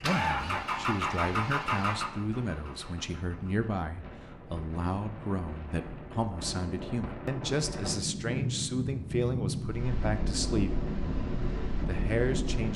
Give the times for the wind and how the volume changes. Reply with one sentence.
The wind can be heard from 0.2 to 12.7 s, getting louder.